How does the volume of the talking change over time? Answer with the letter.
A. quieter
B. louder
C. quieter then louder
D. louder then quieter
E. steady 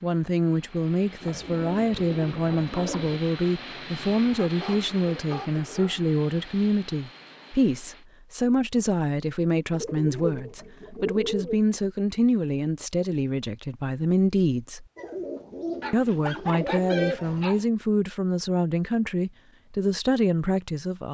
E.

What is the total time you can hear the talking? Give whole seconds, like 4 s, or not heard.
20 s.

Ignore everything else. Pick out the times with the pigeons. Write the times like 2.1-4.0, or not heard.
1.2-3.2, 9.7-11.6, 14.9-17.6.